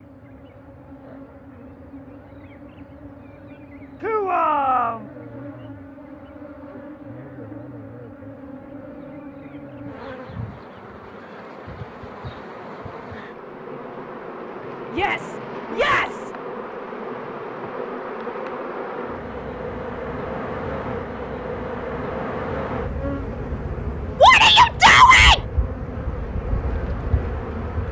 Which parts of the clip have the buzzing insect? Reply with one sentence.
You can hear the buzzing insect from 0.0 to 27.8 s.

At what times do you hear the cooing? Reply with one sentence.
You can't hear the cooing here.